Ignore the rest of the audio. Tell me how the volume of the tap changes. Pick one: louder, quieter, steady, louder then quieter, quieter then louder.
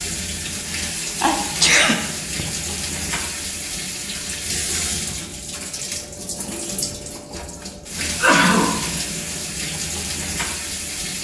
steady.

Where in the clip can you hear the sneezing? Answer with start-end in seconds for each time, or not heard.
0.7-2.5, 8.0-8.8.